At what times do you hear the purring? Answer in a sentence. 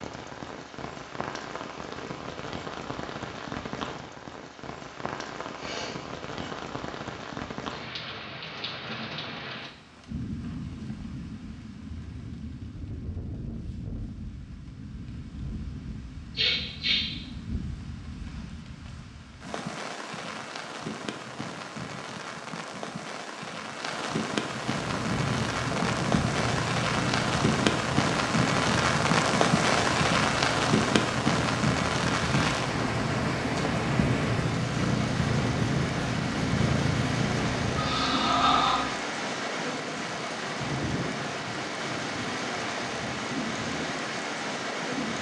You can hear the purring from 24.6 to 38.1 s.